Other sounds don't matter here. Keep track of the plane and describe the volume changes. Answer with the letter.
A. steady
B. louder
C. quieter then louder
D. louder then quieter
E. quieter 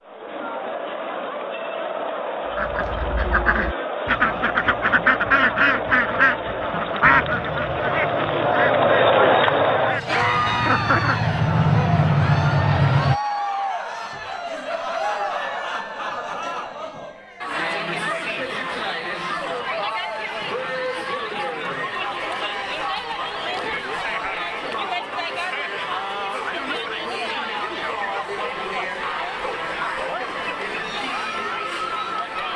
B.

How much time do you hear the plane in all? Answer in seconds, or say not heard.
6 s.